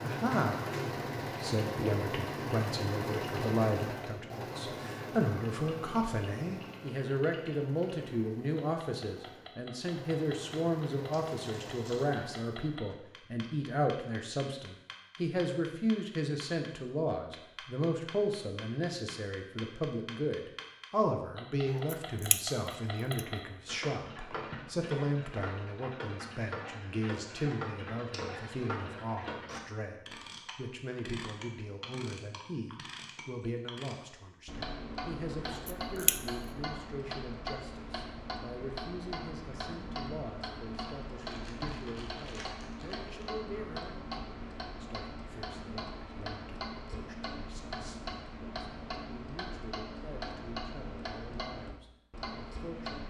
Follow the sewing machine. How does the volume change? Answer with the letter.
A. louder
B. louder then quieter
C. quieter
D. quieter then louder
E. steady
D.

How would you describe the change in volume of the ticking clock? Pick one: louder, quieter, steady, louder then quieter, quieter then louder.
louder.